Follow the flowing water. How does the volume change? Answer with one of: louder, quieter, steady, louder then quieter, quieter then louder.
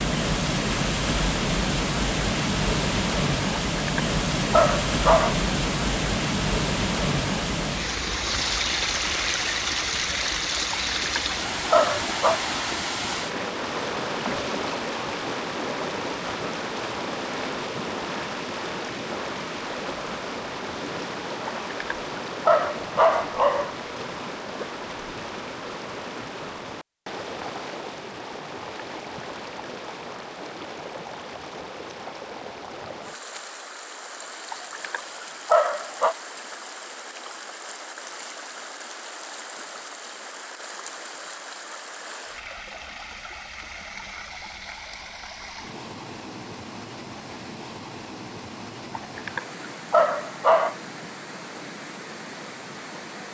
quieter.